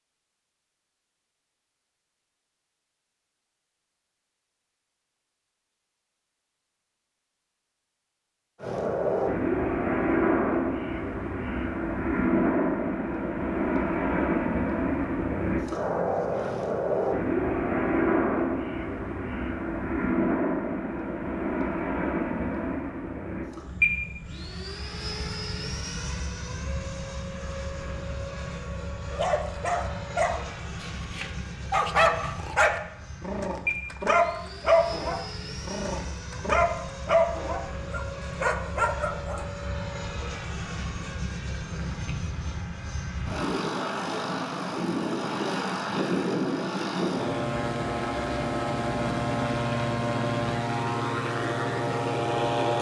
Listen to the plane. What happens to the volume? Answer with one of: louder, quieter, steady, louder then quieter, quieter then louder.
quieter then louder.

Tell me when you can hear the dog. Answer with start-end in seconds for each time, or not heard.
29.1-39.5.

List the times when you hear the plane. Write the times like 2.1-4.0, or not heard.
8.6-52.7.